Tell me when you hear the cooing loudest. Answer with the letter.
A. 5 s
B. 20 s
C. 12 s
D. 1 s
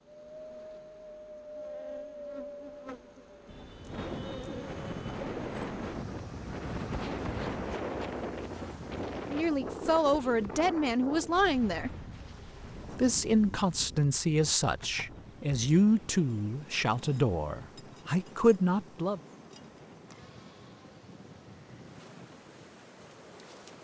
A.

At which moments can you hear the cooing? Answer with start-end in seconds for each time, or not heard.
3.5-5.6.